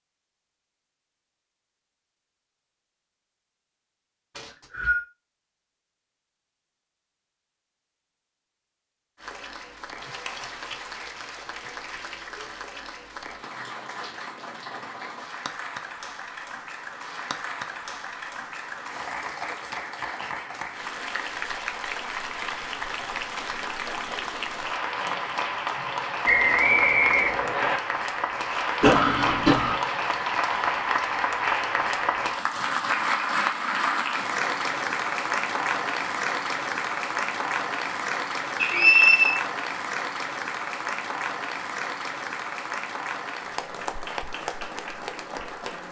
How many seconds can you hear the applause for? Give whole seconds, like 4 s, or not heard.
37 s.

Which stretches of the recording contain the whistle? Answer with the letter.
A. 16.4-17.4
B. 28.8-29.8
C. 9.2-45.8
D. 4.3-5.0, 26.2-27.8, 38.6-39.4
D.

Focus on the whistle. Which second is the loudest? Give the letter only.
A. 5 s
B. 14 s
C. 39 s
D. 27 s
C.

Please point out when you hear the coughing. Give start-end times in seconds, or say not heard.
28.8-29.8.